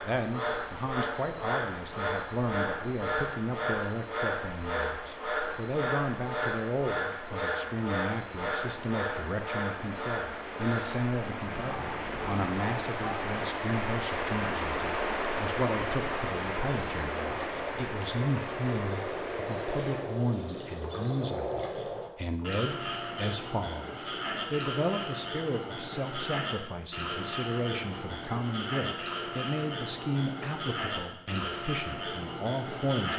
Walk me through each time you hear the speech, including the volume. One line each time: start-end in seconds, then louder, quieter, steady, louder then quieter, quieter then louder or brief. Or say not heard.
0.0-33.1 steady.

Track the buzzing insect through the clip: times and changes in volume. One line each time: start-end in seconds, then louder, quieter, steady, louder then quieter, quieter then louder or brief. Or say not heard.
not heard.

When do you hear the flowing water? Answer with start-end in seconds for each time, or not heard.
0.0-20.2.